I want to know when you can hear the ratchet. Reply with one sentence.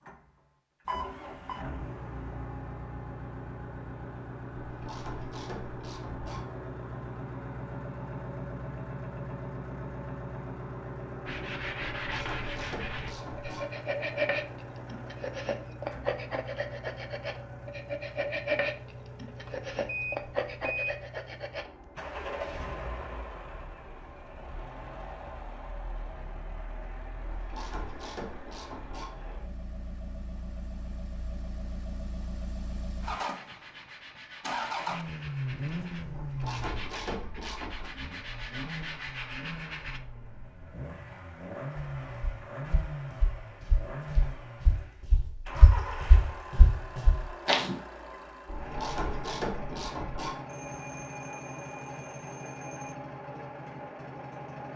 The ratchet can be heard from 4.6 to 6.4 s, from 12.0 to 13.7 s, from 27.2 to 29.1 s, from 36.1 to 37.9 s and from 48.5 to 50.4 s.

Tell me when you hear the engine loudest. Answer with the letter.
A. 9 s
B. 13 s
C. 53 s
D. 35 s
D.